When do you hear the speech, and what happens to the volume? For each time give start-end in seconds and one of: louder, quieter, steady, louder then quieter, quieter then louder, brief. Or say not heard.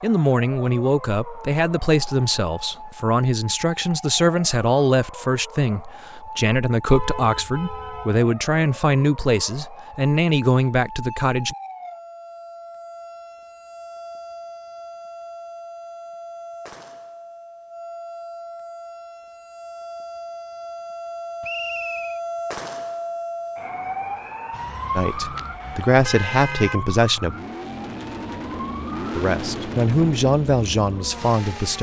0.0-11.6 steady
24.9-27.4 brief
29.1-31.7 brief.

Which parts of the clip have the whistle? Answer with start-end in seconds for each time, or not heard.
21.4-22.2.